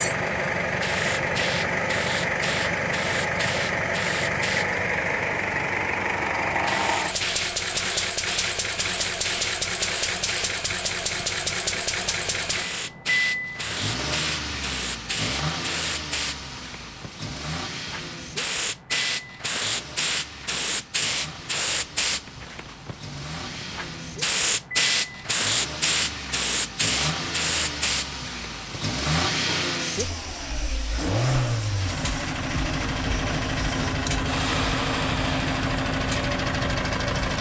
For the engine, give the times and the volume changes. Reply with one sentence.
The engine can be heard from 0.0 to 37.3 s, getting quieter then louder.